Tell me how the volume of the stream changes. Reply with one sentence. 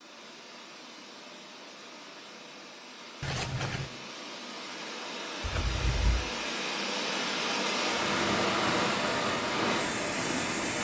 The volume of the stream goes up.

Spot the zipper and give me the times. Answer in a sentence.
You can hear the zipper from 3.2 to 3.9 s and from 5.4 to 6.2 s.